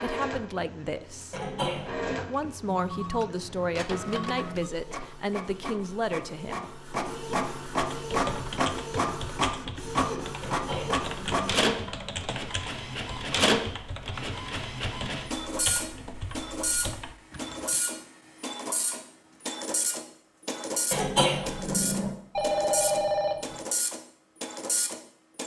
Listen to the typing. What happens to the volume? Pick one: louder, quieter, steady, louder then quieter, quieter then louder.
steady.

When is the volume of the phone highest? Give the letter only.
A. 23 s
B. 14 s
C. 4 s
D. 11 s
A.